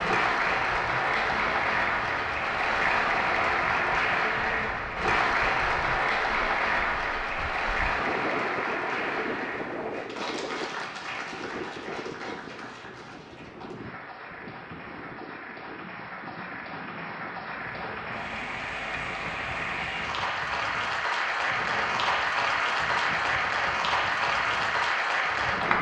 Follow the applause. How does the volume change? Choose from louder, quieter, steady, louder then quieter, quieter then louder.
quieter then louder.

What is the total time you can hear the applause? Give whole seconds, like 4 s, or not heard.
26 s.